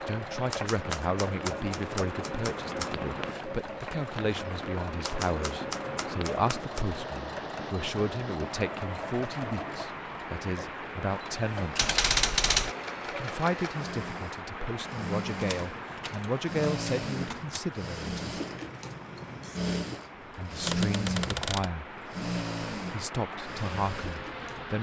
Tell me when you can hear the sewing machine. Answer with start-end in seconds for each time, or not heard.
0.0-24.7.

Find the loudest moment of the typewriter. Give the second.
12 s.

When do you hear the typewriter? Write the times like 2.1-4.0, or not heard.
0.5-2.9, 5.0-6.8, 11.8-12.8, 15.4-17.6, 20.6-21.7.